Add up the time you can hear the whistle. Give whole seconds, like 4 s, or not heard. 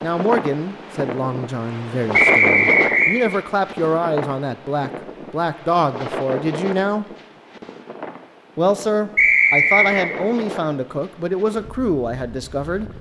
2 s.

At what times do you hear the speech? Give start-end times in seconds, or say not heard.
0.0-7.0, 8.6-12.9.